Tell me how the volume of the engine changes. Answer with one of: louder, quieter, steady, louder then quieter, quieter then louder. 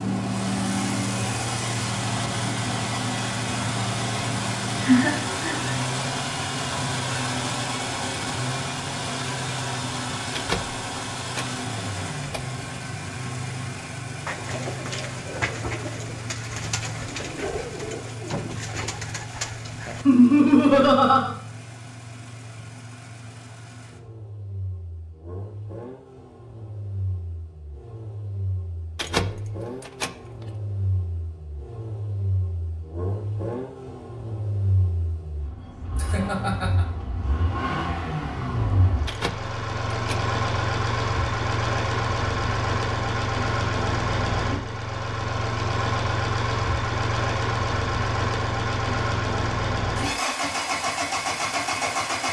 quieter then louder.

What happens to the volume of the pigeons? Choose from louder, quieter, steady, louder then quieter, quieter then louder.
steady.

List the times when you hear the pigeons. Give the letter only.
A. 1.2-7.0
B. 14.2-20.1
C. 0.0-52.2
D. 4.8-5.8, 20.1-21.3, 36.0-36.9
B.